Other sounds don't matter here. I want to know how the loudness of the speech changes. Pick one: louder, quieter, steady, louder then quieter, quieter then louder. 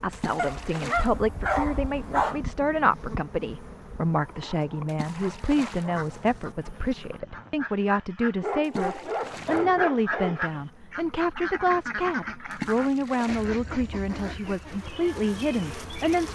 steady.